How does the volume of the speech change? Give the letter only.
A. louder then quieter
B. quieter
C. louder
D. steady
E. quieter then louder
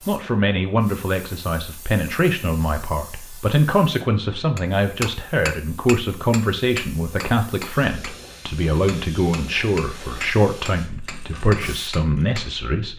D.